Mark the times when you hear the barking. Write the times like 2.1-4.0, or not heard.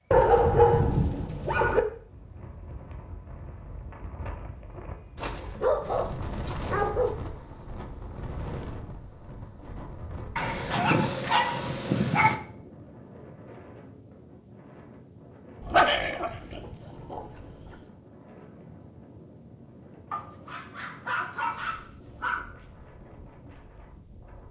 0.1-1.8, 5.2-7.2, 10.3-12.3, 15.6-17.8, 20.1-22.4.